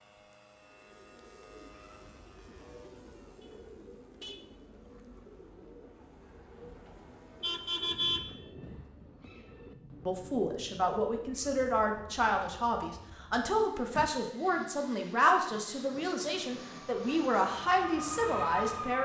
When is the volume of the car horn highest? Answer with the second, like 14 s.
8 s.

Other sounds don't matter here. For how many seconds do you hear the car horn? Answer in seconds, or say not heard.
4 s.